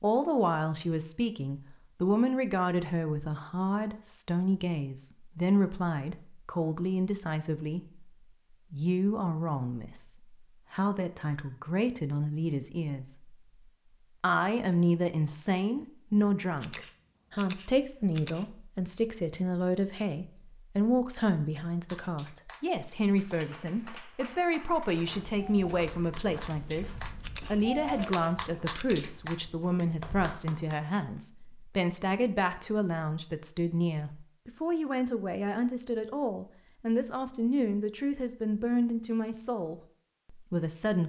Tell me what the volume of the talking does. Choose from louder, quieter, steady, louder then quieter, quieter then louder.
steady.